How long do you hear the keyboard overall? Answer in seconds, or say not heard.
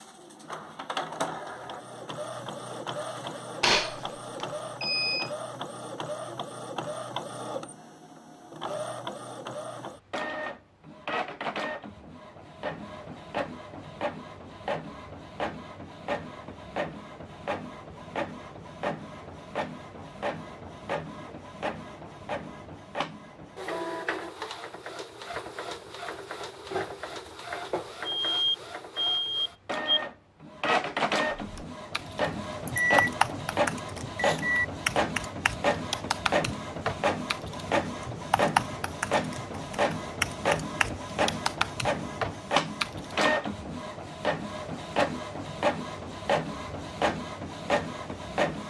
12 s.